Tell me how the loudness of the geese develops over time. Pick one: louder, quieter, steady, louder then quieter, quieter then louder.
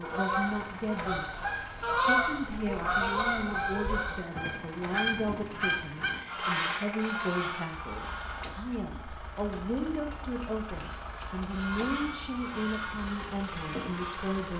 quieter.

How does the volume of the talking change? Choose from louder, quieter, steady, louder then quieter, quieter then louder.
steady.